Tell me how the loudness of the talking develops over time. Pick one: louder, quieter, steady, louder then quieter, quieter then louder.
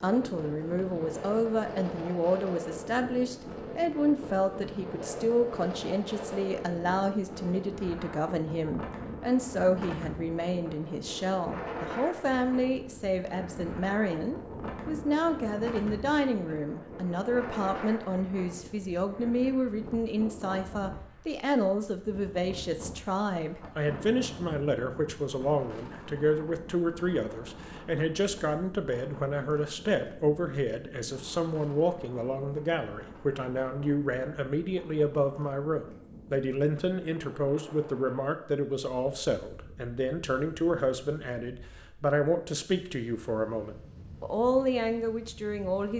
steady.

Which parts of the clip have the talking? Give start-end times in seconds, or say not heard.
0.0-45.9.